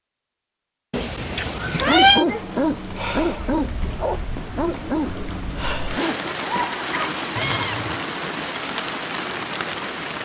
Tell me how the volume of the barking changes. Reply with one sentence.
The volume of the barking goes down.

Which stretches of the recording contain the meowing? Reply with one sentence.
The meowing can be heard from 0.9 to 2.2 s and from 7.3 to 8.0 s.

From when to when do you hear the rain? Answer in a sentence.
You can hear the rain from 2.2 to 10.2 s.